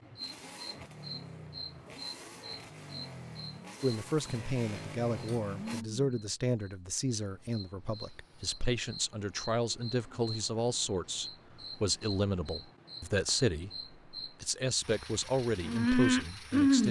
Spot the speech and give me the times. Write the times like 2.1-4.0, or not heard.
3.8-16.8.